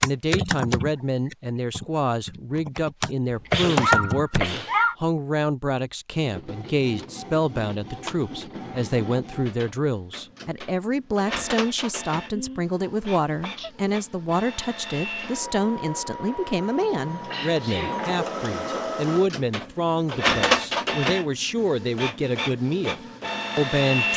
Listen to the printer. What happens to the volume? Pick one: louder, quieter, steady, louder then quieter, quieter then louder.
louder.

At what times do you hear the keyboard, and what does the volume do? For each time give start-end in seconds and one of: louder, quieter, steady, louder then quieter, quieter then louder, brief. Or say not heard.
0.0-4.4 quieter then louder.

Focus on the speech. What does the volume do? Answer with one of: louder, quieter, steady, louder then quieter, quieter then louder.
steady.